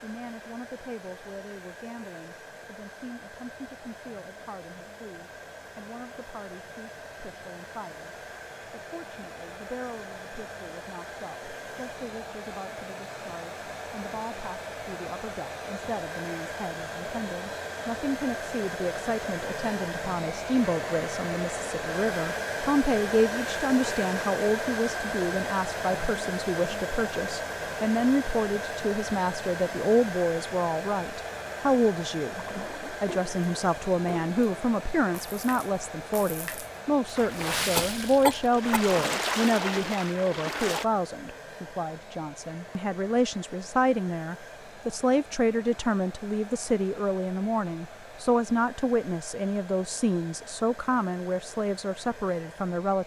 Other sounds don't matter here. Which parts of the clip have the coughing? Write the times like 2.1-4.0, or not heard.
37.8-39.0.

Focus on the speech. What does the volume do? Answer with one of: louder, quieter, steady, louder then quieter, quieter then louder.
louder.